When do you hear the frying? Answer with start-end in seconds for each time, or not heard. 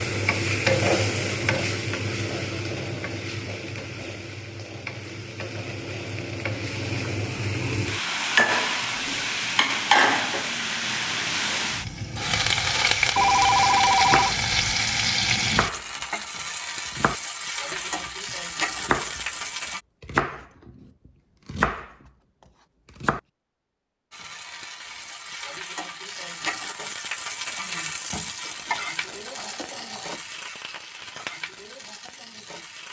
0.0-19.8, 24.1-32.8.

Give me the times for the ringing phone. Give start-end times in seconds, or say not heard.
13.2-14.3, 28.4-30.2.